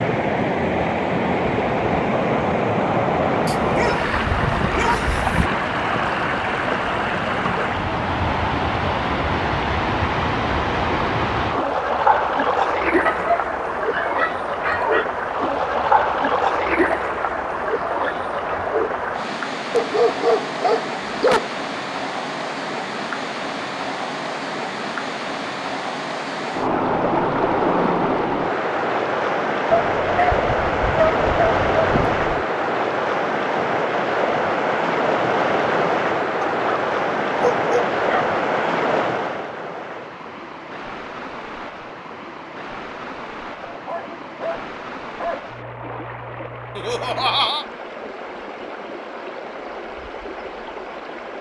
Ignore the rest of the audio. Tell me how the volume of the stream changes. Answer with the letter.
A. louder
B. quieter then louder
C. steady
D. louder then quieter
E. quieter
E.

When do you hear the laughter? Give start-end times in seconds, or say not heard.
46.8-47.6.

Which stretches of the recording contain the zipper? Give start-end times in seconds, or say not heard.
not heard.